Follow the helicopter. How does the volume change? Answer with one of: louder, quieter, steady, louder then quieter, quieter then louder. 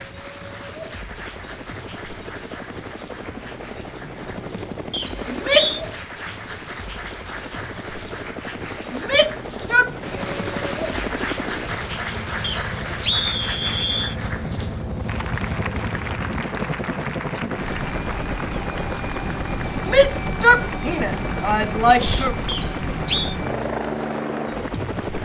louder.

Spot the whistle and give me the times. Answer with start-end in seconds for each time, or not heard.
4.9-5.8, 12.4-14.2, 22.4-23.4.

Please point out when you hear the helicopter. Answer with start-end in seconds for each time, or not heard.
0.0-25.2.